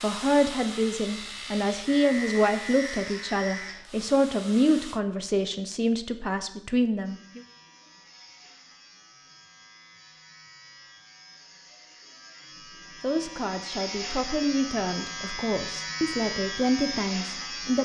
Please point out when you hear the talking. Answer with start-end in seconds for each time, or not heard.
0.0-7.4, 13.0-17.8.